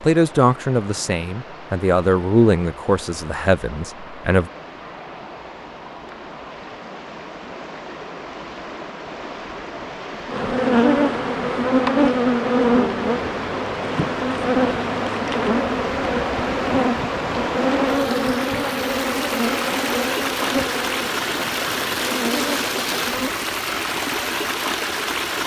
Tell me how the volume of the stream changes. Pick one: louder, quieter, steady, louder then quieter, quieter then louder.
louder.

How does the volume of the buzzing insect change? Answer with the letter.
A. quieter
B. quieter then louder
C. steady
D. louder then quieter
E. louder
A.